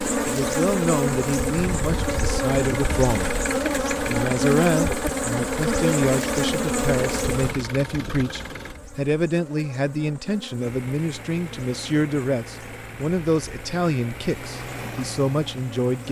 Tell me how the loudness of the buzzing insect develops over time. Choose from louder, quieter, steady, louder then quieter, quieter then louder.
quieter.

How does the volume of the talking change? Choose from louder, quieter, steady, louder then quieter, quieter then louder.
steady.